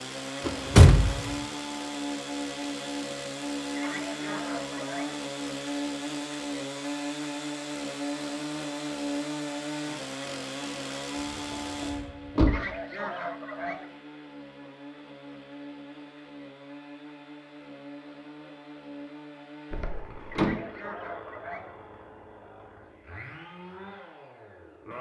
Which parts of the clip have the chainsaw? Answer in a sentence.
You can hear the chainsaw from 0.0 to 24.9 s.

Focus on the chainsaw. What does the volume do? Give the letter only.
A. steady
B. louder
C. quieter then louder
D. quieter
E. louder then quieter
D.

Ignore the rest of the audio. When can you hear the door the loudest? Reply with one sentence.
The volume of the door peaks at 1 second.